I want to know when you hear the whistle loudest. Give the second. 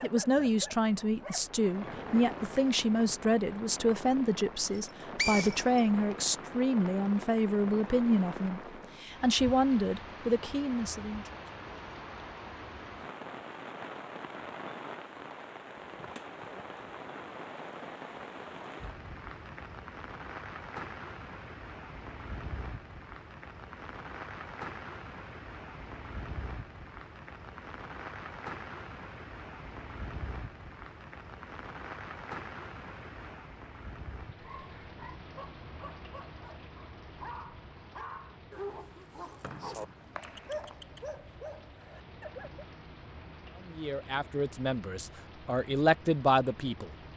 5 s.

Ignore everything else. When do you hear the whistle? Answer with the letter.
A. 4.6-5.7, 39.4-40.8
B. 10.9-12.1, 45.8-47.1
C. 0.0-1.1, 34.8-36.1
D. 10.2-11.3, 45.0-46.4
A.